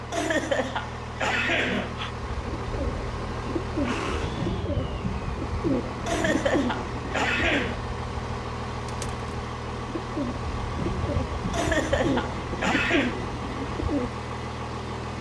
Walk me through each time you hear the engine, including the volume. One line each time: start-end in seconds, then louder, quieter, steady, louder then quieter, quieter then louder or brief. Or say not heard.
0.0-15.1 steady.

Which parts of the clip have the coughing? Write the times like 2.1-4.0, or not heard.
0.1-2.1, 6.0-7.8, 11.5-13.2.